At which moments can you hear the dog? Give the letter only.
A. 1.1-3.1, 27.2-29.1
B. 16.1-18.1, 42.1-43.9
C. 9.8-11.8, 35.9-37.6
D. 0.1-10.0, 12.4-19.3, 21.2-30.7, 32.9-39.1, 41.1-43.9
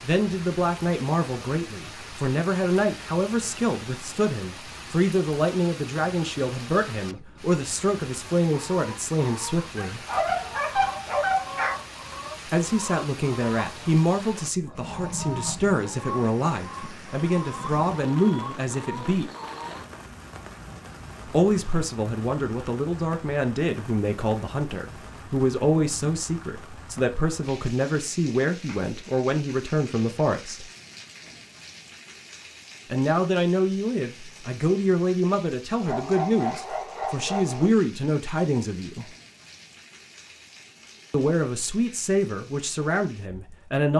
C.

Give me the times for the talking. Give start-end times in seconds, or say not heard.
0.1-10.0, 12.4-19.3, 21.2-30.7, 32.9-39.1, 41.1-43.9.